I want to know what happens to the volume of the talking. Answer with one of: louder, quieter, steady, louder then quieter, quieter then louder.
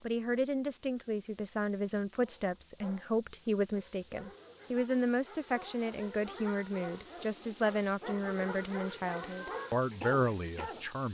steady.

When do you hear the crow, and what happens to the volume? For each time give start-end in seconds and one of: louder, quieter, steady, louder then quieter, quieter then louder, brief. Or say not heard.
not heard.